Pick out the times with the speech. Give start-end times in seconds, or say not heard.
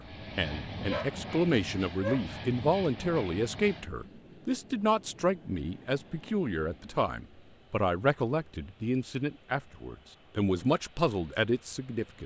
0.0-12.2.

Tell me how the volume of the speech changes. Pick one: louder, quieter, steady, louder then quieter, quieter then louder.
steady.